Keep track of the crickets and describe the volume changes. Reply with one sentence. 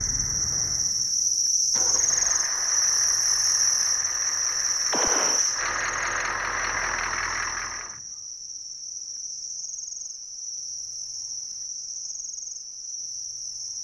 The loudness of the crickets goes down.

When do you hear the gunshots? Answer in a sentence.
You can hear the gunshots from 4.9 to 5.5 s.